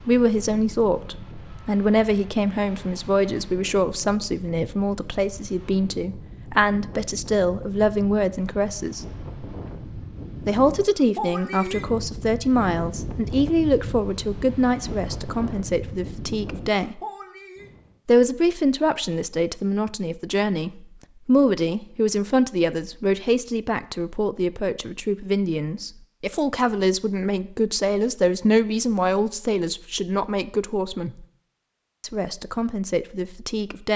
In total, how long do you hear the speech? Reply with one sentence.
You can hear the speech for 31 seconds altogether.